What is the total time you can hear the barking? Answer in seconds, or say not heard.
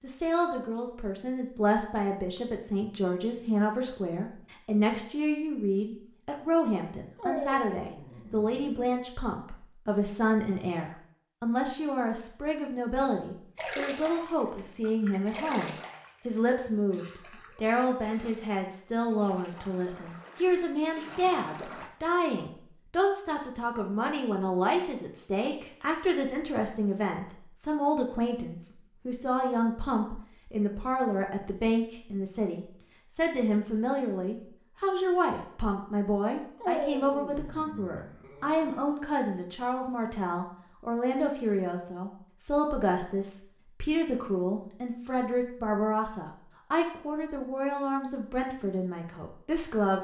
4 s.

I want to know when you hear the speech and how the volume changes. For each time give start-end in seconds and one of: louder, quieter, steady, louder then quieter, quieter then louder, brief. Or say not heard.
0.0-49.9 steady.